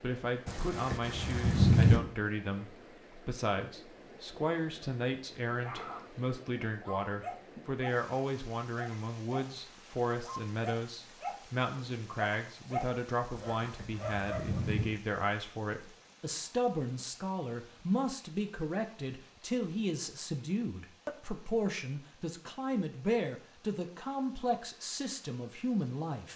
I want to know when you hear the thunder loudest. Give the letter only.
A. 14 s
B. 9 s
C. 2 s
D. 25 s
C.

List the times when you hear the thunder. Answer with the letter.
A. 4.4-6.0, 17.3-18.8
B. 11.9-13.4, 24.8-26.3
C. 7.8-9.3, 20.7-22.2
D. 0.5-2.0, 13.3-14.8
D.